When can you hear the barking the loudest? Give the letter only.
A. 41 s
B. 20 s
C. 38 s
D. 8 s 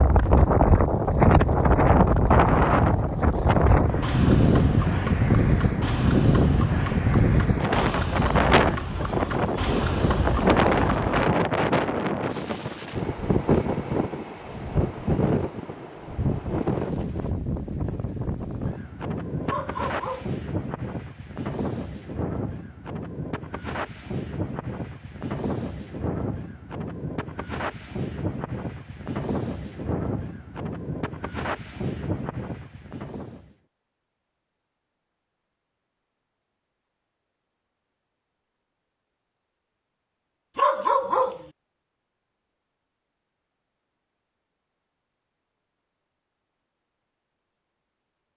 A.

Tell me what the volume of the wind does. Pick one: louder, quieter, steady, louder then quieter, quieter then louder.
quieter.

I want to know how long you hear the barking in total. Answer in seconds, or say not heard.
2 s.